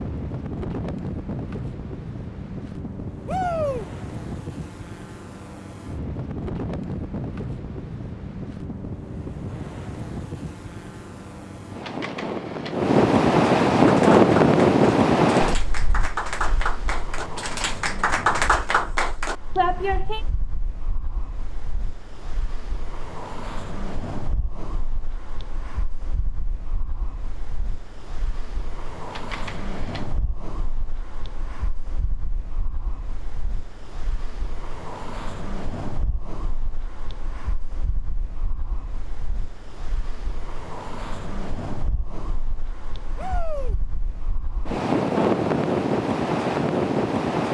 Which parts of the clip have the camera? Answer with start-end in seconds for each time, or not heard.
11.8-12.8, 29.1-30.1.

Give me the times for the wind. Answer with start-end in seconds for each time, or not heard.
0.0-47.4.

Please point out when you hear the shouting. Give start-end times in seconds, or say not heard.
3.2-3.9, 43.1-43.8.